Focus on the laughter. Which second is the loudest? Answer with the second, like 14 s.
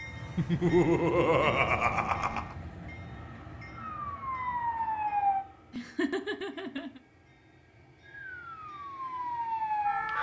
1 s.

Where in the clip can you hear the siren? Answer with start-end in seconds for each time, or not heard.
3.8-5.5, 8.0-10.1.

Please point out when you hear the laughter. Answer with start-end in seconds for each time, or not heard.
0.3-2.5, 5.7-7.0.